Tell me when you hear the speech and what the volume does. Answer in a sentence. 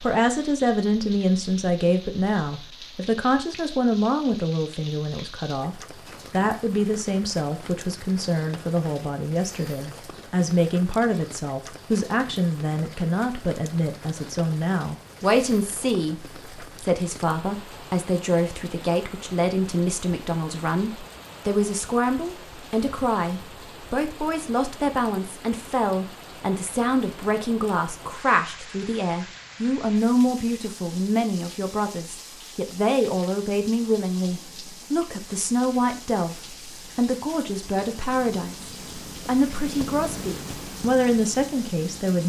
The speech can be heard from 0.0 to 42.2 s, at a steady volume.